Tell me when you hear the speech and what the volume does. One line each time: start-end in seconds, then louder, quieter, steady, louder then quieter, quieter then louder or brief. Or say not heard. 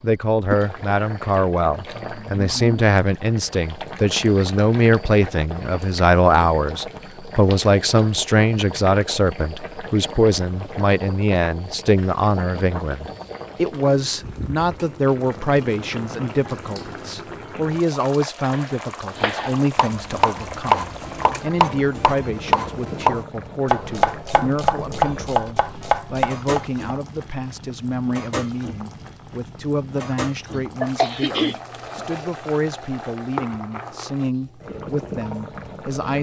0.0-36.1 quieter.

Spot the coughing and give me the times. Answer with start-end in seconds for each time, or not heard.
30.8-32.0.